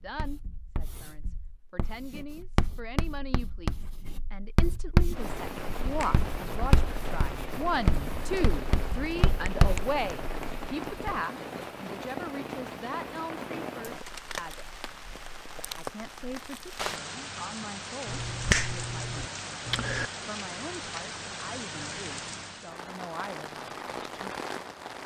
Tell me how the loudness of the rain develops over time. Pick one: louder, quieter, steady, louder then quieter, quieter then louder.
steady.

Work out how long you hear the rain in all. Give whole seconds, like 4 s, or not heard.
20 s.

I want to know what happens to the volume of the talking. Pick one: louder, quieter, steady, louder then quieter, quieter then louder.
louder then quieter.